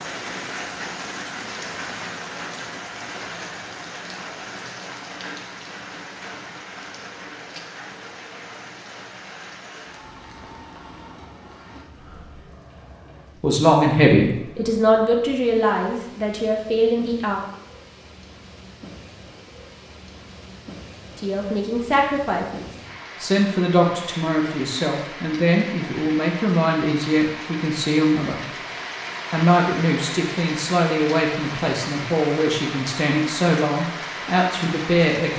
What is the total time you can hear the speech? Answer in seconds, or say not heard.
17 s.